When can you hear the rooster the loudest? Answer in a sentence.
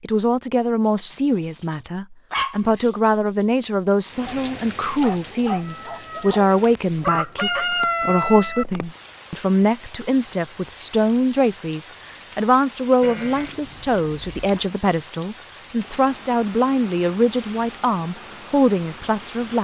The loudest moment of the rooster is at 8 seconds.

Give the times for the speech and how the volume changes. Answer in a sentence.
The speech can be heard from 0.0 to 19.5 s, at a steady volume.